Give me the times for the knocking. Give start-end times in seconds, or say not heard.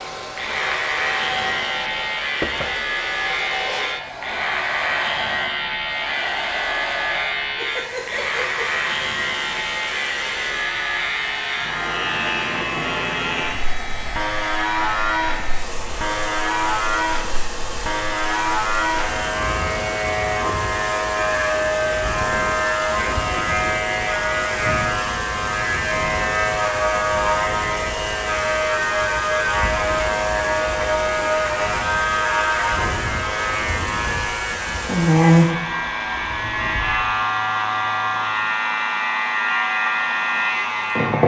2.4-2.9.